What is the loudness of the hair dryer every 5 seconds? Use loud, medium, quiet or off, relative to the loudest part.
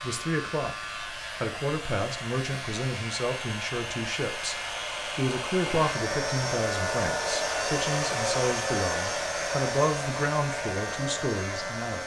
medium, loud, medium.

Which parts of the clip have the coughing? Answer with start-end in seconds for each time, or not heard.
not heard.